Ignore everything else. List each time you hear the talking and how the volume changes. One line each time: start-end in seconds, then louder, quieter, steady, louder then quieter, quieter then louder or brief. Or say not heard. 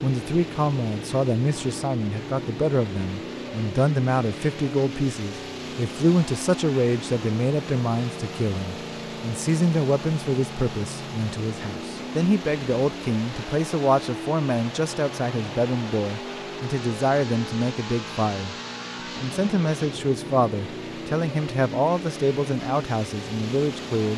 0.0-24.1 steady.